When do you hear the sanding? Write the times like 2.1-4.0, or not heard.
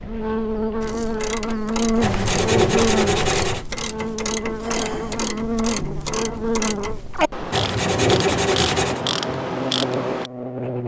2.0-3.6, 7.5-9.0.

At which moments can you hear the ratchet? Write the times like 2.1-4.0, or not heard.
0.8-10.3.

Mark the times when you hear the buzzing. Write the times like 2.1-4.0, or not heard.
0.0-10.8.